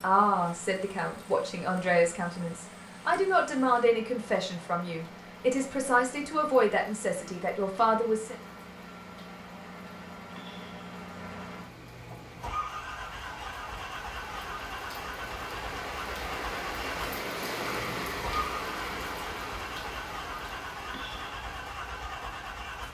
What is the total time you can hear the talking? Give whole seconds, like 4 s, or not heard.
8 s.